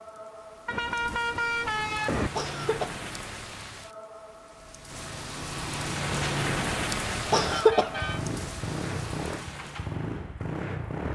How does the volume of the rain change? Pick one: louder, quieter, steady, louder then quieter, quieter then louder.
louder then quieter.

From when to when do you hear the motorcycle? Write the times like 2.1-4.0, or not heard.
7.2-11.0.